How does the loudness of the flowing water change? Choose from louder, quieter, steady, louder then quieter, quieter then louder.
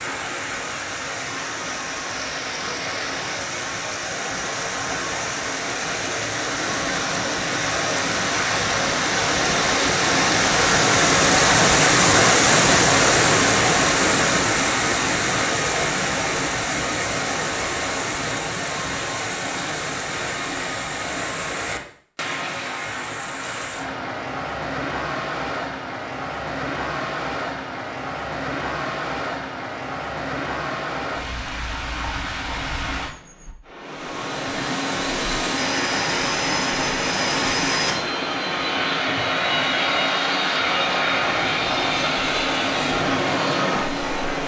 louder then quieter.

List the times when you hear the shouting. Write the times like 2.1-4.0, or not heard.
not heard.